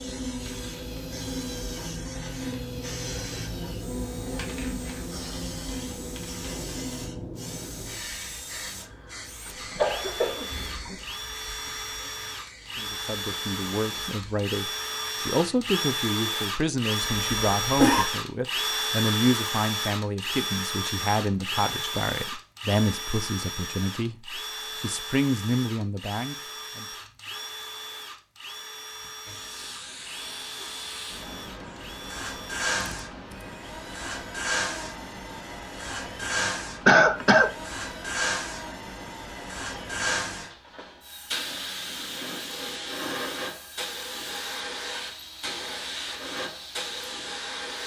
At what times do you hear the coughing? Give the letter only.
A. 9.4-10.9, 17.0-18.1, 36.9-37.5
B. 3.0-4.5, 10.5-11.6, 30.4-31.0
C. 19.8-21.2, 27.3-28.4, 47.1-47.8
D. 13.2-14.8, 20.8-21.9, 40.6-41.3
A.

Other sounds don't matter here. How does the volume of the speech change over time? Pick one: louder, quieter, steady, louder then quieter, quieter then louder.
steady.